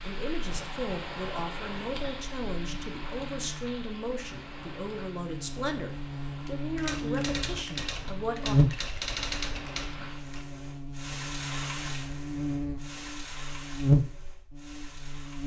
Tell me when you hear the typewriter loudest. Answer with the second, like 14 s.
9 s.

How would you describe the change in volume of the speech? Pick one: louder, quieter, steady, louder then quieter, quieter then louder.
steady.